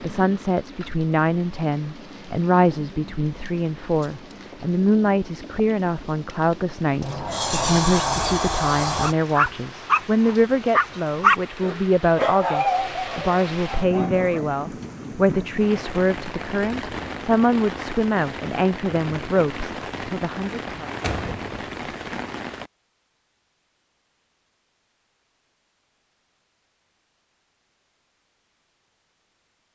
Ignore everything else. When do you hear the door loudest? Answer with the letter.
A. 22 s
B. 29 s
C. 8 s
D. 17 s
C.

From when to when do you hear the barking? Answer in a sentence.
You can hear the barking from 9.0 to 14.5 s.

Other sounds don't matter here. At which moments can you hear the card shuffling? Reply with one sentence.
You can't hear the card shuffling here.